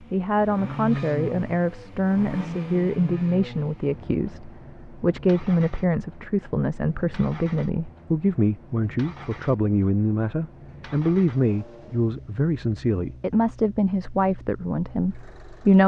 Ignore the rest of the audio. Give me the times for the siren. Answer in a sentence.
You can't hear the siren here.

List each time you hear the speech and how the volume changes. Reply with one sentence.
The speech can be heard from 0.1 to 15.8 s, at a steady volume.